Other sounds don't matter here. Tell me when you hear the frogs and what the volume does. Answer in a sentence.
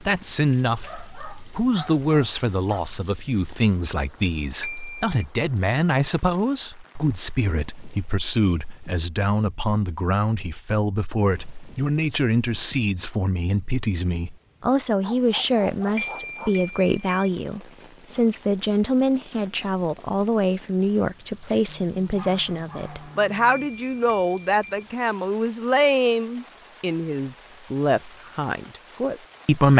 The frogs can't be heard in this clip.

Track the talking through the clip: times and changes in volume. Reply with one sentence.
You can hear the talking from 0.0 to 29.7 s, at a steady volume.